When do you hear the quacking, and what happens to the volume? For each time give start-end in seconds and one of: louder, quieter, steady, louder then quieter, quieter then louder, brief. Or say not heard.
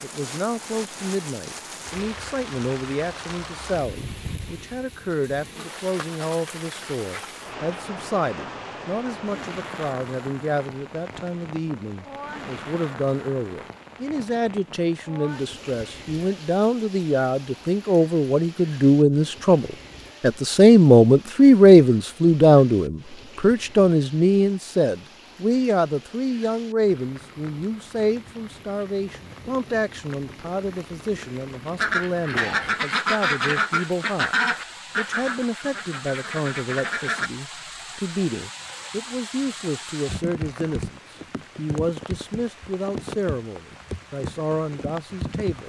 31.8-37.3 quieter.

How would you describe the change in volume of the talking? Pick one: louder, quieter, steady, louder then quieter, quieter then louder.
louder then quieter.